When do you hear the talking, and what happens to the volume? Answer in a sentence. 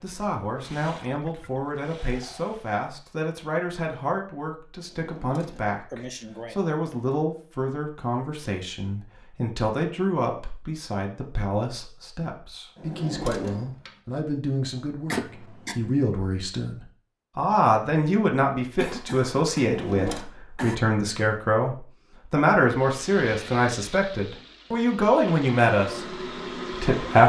The talking can be heard from 0.0 to 27.2 s, getting louder.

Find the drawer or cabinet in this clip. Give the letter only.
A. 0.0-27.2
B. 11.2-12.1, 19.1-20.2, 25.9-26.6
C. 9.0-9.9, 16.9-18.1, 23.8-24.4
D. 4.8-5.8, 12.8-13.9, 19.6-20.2
D.